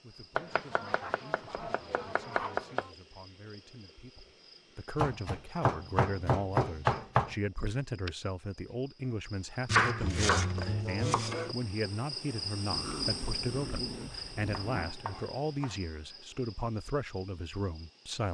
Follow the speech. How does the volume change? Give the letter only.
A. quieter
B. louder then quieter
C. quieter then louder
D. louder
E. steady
D.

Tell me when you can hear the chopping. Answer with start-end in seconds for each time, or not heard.
0.3-2.9, 5.0-7.3, 9.7-11.6, 14.0-15.8.